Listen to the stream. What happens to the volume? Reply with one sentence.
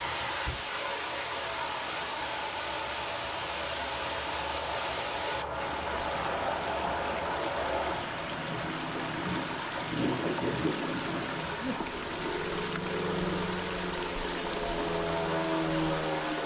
The volume of the stream stays about the same.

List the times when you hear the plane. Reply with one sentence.
The plane can be heard from 0.0 to 16.4 s.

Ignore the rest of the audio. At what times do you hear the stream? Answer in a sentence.
You can hear the stream from 0.0 to 16.4 s.